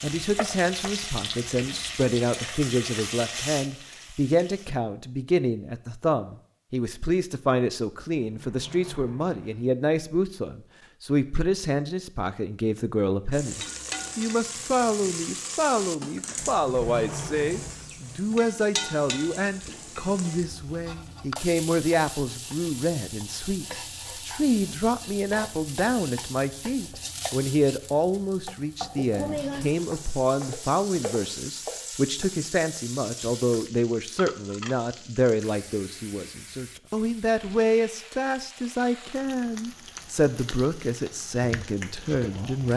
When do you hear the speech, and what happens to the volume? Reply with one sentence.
The speech can be heard from 0.0 to 42.7 s, at a steady volume.